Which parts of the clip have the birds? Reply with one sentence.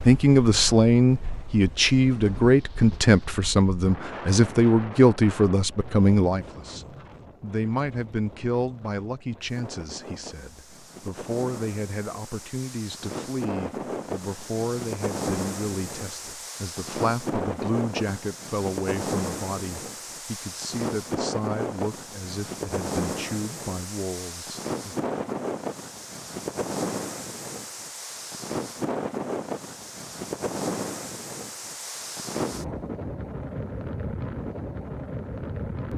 The birds can't be heard in this clip.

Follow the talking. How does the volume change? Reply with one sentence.
The loudness of the talking goes down.